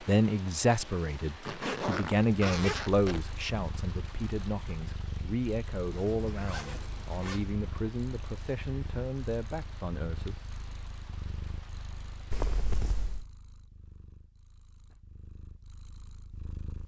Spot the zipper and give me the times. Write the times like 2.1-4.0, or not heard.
1.4-3.2, 5.9-7.5, 12.3-13.2.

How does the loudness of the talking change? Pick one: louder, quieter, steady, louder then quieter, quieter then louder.
quieter.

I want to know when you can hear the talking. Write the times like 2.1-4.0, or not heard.
0.1-10.5.